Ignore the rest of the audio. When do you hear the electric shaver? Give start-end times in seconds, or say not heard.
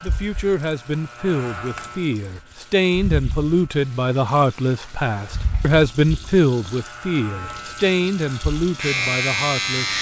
0.0-3.9, 5.2-9.9.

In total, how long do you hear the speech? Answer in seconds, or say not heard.
10 s.